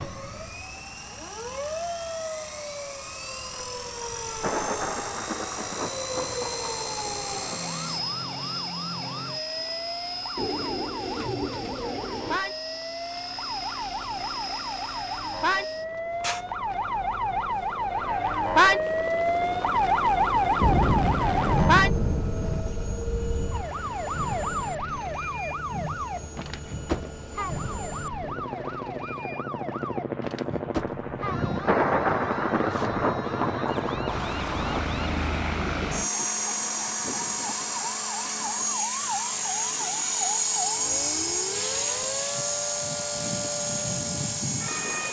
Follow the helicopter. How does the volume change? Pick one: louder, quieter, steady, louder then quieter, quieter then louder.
louder.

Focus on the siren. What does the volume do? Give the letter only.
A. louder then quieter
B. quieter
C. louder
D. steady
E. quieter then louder
A.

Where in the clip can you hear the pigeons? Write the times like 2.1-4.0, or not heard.
10.3-12.4.